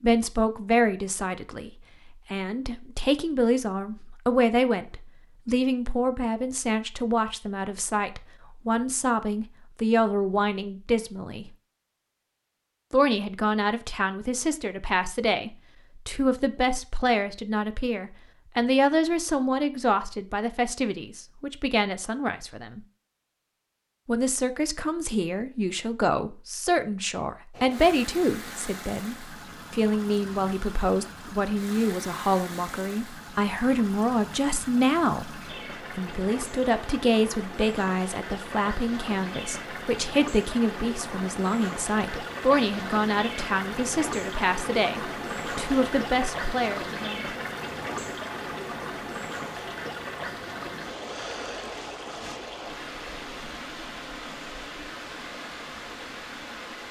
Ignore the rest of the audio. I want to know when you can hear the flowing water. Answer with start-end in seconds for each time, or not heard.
27.5-56.8.